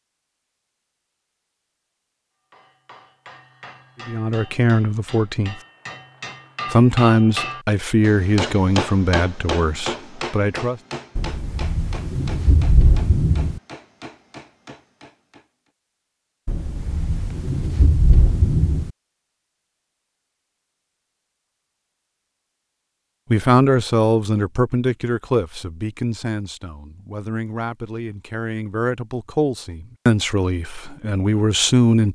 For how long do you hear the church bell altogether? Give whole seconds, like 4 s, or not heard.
not heard.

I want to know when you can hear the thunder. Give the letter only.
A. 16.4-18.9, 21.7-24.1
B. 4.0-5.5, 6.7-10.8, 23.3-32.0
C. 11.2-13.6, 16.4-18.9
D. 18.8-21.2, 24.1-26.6
C.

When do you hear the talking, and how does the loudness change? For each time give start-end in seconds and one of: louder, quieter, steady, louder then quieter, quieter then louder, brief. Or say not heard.
4.0-5.5 brief
6.7-10.8 quieter
23.3-32.0 quieter then louder.